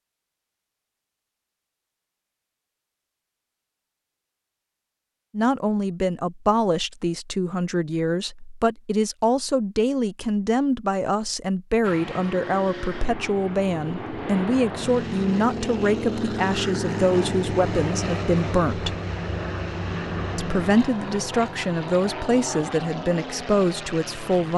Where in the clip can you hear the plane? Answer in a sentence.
You can hear the plane from 11.8 to 24.5 s.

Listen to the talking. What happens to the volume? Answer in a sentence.
The volume of the talking stays about the same.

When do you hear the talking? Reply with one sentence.
You can hear the talking from 5.3 to 18.9 s and from 20.4 to 24.5 s.